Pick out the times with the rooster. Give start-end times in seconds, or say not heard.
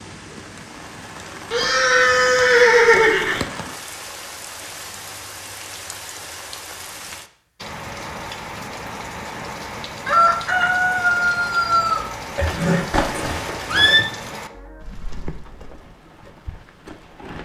10.1-12.1.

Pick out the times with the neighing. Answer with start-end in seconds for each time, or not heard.
1.5-3.5, 12.3-14.1.